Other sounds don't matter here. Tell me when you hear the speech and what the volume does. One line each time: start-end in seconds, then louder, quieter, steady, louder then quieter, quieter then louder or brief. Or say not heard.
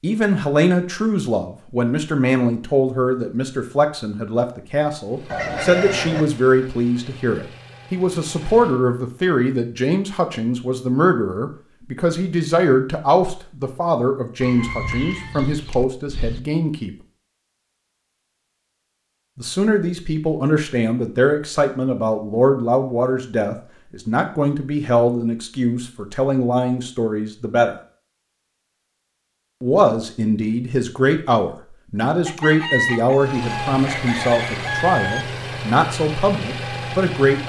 0.0-16.9 steady
19.4-27.8 steady
29.6-37.4 steady.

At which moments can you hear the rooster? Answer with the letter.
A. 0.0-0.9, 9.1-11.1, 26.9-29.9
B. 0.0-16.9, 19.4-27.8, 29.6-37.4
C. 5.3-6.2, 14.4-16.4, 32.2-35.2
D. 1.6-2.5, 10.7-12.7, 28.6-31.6
C.